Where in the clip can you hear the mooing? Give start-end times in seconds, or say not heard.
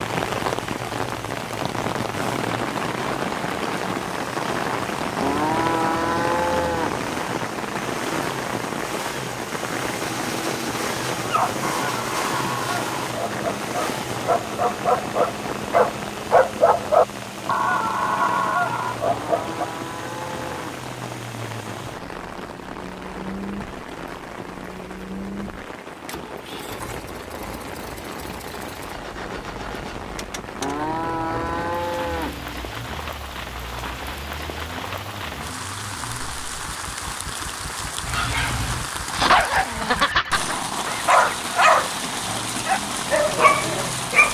5.2-7.2, 19.1-20.8, 30.6-32.6.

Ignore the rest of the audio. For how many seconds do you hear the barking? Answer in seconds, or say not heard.
15 s.